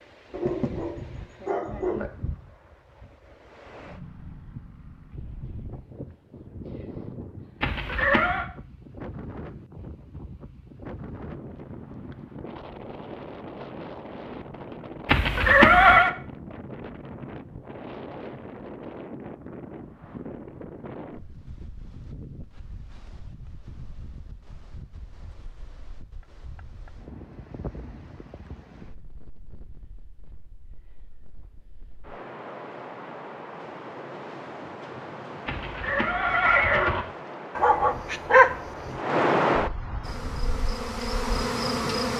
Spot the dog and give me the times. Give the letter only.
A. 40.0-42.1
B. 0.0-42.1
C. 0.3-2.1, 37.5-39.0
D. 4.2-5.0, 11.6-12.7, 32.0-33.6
C.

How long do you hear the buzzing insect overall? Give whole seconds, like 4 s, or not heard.
2 s.